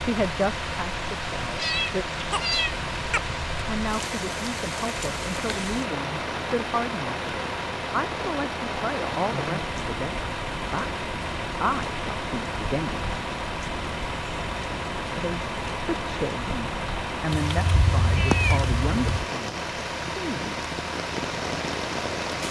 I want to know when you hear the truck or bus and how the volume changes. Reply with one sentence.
You can hear the truck or bus from 0.0 to 22.4 s, at a steady volume.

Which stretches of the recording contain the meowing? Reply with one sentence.
The meowing can be heard from 1.4 to 3.2 s and from 17.3 to 19.2 s.